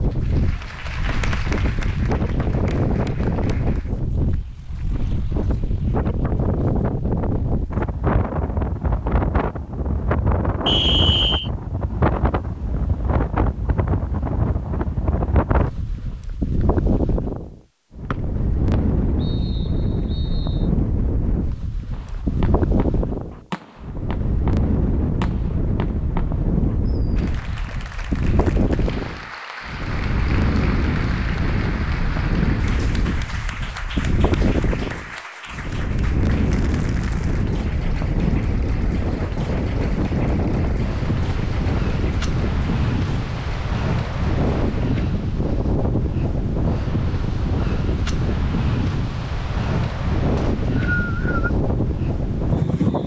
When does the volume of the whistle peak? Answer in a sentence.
The loudest moment of the whistle is at 11 seconds.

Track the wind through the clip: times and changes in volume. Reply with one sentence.
The wind can be heard from 0.0 to 53.0 s, at a steady volume.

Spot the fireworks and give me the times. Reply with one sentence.
The fireworks can be heard from 21.9 to 27.0 s.